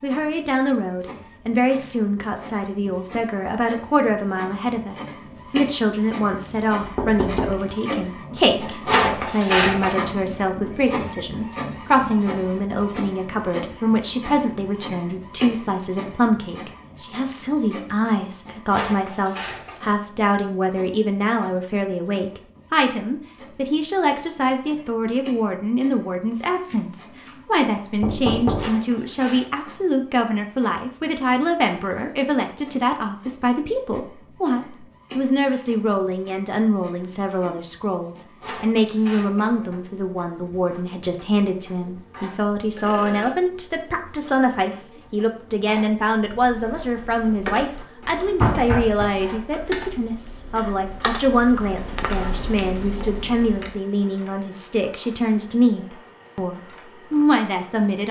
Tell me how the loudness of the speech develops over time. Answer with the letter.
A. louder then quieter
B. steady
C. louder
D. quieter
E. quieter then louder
B.